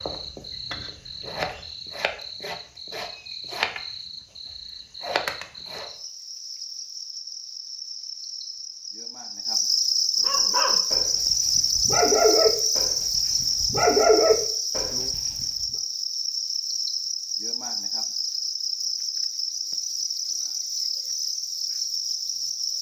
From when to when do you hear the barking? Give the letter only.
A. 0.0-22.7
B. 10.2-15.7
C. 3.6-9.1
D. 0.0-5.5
B.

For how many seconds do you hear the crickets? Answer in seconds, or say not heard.
23 s.